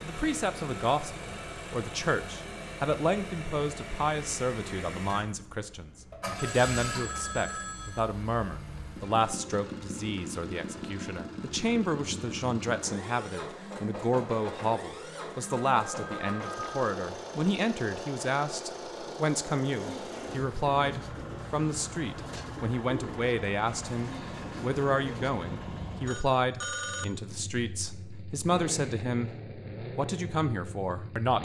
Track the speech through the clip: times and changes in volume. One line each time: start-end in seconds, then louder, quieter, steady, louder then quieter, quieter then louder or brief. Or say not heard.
0.0-29.4 steady
29.9-31.4 brief.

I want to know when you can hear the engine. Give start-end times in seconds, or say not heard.
0.0-31.4.